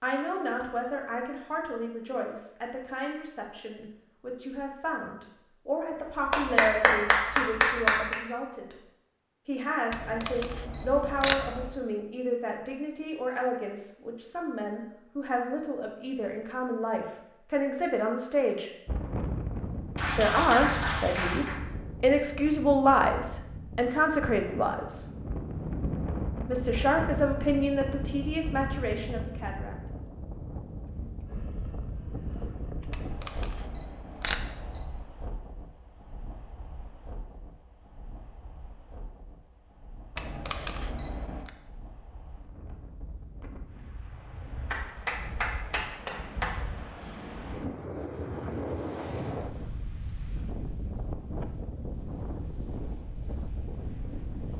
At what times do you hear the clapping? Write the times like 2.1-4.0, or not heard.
6.3-8.2, 19.9-21.6, 44.7-46.5.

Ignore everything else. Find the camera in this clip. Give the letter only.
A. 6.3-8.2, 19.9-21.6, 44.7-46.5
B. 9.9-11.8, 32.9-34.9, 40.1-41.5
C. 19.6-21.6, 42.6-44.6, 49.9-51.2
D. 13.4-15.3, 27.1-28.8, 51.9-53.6
B.